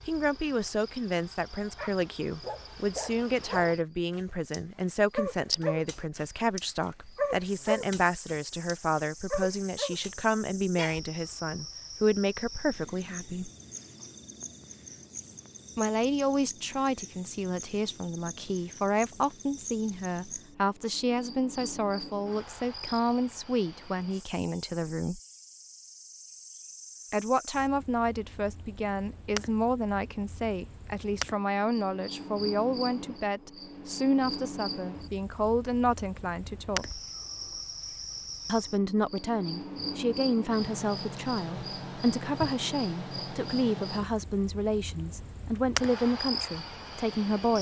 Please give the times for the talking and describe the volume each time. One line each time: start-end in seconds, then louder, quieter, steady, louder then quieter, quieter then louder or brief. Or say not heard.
0.0-13.5 steady
15.8-25.2 steady
27.1-36.9 steady
38.5-47.5 steady.